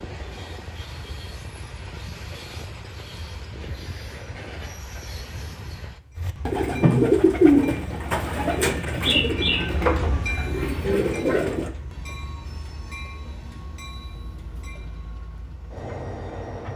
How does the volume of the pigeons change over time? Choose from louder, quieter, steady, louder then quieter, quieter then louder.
quieter.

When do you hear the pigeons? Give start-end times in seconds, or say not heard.
6.2-11.7.